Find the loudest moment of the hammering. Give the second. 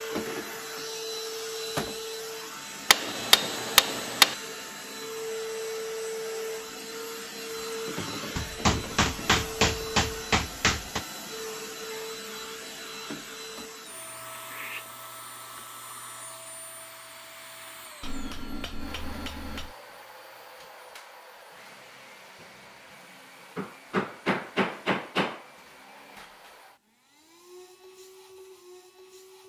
4 s.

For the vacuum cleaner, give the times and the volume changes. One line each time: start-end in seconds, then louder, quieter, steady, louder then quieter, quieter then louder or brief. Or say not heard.
0.0-29.4 quieter.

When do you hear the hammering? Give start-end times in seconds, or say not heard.
2.9-4.3, 8.3-11.0, 18.0-19.8, 23.6-25.4.